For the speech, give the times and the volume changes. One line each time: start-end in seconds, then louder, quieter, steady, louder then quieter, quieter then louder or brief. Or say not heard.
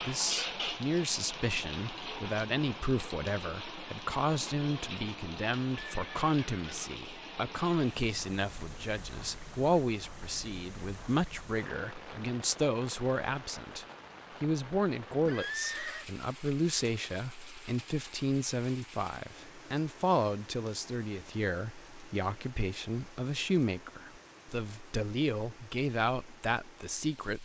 0.0-27.4 steady.